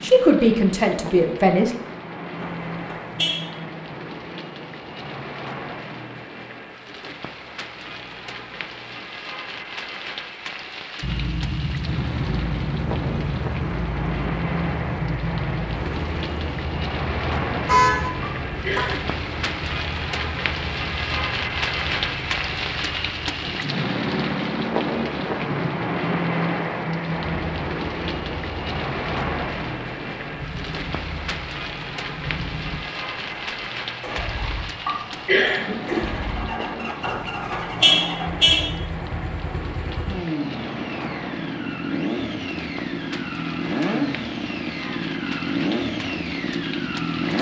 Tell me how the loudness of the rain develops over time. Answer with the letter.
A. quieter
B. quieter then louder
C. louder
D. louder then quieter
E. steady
D.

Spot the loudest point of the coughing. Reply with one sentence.
The volume of the coughing peaks at 35 seconds.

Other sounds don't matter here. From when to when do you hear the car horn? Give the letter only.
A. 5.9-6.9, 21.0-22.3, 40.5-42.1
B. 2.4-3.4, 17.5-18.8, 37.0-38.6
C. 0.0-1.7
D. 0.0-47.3
B.